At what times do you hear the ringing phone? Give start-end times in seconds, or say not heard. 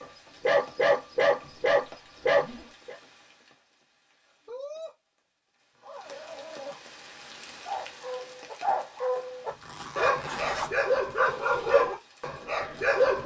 not heard.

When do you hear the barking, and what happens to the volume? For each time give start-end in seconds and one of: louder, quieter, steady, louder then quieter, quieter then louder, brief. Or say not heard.
0.0-3.0 brief
7.6-13.2 louder then quieter.